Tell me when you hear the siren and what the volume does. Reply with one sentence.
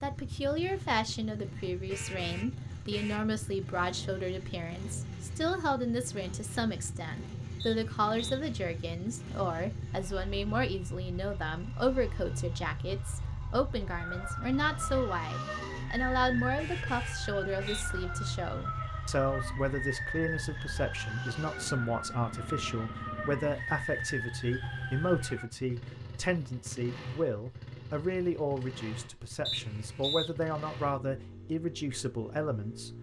The siren can be heard from 13.9 to 25.4 s, at a steady volume.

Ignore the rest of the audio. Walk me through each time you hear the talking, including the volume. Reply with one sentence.
The talking can be heard from 0.0 to 32.9 s, at a steady volume.